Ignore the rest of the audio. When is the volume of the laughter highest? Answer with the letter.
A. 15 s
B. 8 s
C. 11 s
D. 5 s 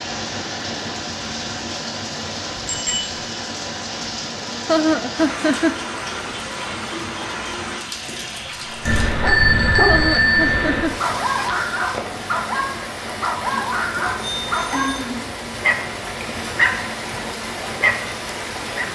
D.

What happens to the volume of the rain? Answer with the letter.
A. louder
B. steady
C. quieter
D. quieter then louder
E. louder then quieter
B.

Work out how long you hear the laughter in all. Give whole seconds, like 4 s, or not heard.
2 s.